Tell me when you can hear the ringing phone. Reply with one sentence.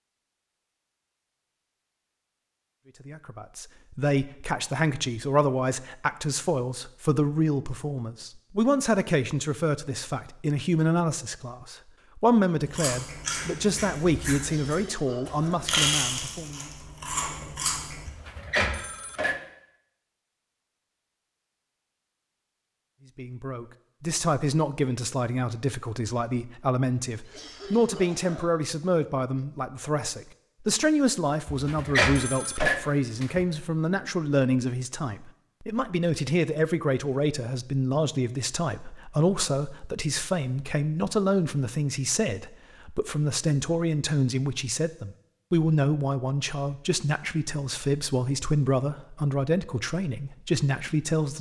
The ringing phone can be heard from 18.1 to 19.4 s and from 31.4 to 33.5 s.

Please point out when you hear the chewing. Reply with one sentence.
The chewing can be heard from 12.6 to 18.1 s.